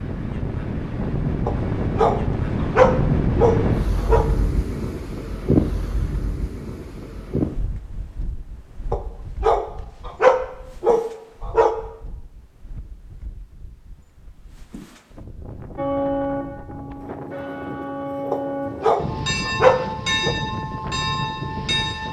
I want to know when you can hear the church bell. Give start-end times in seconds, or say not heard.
15.8-22.0.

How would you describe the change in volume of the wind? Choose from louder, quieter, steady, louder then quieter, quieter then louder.
quieter then louder.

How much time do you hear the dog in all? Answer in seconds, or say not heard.
8 s.